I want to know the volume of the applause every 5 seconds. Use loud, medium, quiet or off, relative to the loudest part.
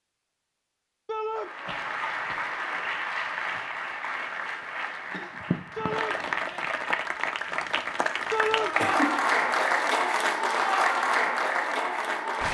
medium, loud, loud.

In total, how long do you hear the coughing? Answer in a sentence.
You can hear the coughing for 2 seconds altogether.